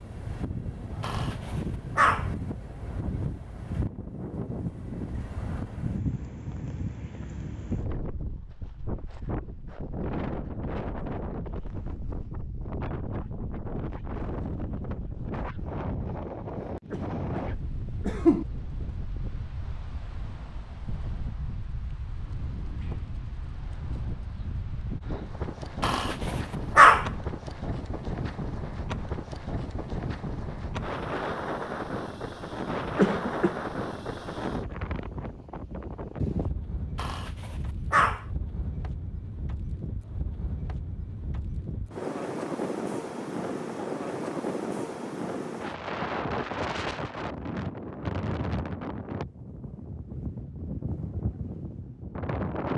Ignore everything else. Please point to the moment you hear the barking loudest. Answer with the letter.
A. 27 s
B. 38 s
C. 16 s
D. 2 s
A.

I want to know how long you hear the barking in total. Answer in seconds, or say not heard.
4 s.